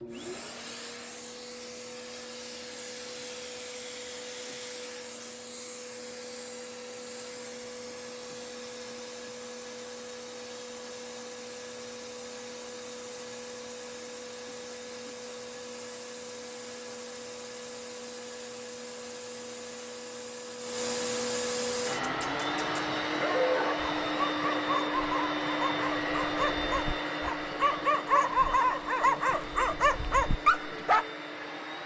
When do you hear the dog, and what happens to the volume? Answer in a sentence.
You can hear the dog from 21.9 to 31.1 s, getting louder.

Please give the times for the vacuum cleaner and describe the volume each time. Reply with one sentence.
You can hear the vacuum cleaner from 0.0 to 31.8 s, getting louder.